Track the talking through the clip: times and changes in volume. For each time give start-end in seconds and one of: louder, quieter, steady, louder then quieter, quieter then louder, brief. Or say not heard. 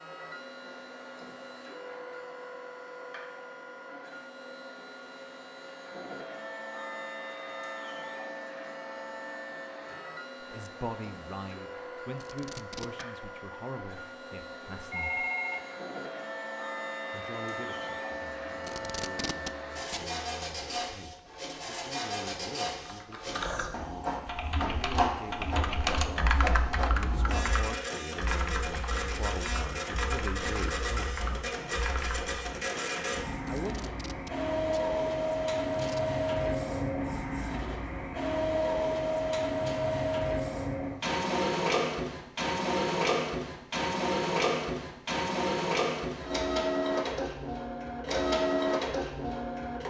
10.4-15.2 quieter
17.1-31.2 louder
33.5-33.9 brief.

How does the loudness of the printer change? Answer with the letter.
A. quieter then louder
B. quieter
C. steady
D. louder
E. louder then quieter
D.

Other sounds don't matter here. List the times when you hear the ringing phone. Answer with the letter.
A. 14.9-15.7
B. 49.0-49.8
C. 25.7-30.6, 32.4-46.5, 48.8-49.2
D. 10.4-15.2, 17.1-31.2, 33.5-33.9
A.